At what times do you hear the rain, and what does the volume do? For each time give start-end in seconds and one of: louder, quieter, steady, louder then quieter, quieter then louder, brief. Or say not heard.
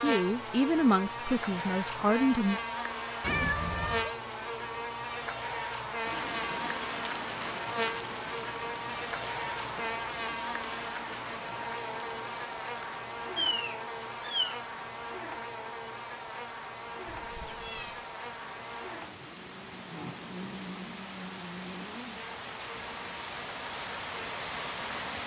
6.0-25.2 quieter then louder.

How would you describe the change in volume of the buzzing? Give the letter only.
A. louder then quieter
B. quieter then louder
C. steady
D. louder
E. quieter
E.